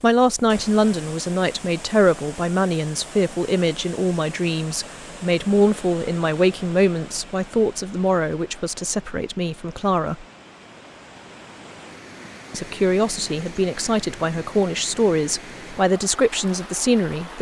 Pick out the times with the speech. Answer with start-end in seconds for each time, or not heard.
0.0-10.2, 12.5-17.3.